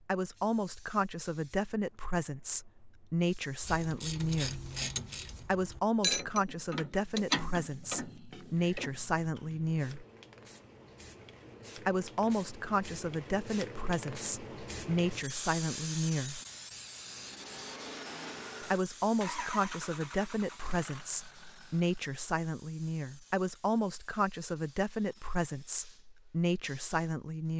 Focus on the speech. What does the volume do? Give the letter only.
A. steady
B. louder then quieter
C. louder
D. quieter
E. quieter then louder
A.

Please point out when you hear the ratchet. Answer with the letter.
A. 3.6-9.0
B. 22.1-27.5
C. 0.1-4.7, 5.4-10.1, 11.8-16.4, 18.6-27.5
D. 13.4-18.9
A.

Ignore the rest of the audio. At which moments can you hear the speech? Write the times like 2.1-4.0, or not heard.
0.1-4.7, 5.4-10.1, 11.8-16.4, 18.6-27.5.